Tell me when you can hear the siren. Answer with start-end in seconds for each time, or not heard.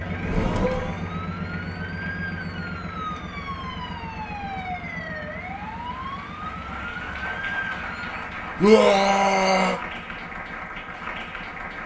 0.0-8.2.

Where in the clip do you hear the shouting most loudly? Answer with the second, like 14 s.
9 s.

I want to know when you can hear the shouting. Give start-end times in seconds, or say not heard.
0.2-1.2, 8.6-9.8.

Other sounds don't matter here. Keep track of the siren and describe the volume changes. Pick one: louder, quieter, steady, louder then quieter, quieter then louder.
louder.